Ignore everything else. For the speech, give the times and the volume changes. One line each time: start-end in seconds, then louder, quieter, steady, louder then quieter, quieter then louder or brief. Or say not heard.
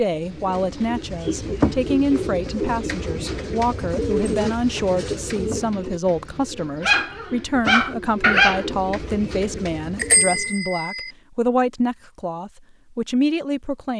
0.0-13.9 steady.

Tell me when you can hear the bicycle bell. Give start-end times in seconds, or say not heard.
9.9-11.1.